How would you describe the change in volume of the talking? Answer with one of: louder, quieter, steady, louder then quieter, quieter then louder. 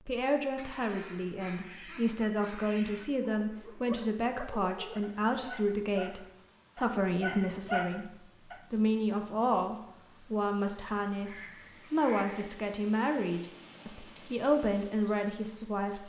steady.